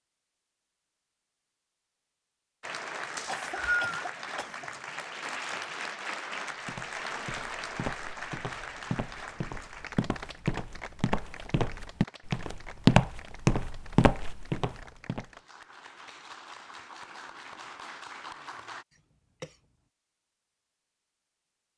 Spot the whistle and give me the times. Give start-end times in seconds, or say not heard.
3.1-4.0.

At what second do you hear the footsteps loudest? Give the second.
13 s.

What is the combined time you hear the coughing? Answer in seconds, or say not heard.
2 s.